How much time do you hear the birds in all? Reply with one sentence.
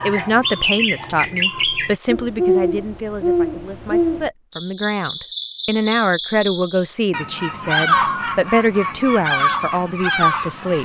The birds can be heard for 11 seconds in total.